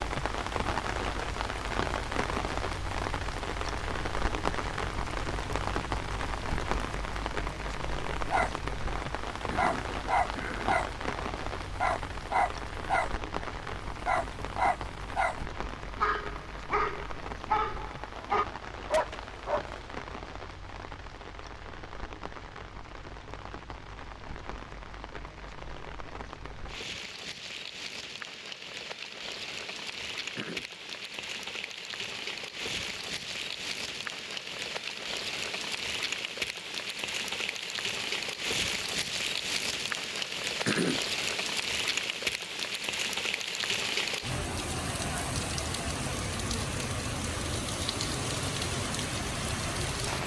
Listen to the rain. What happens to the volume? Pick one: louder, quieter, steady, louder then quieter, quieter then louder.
quieter then louder.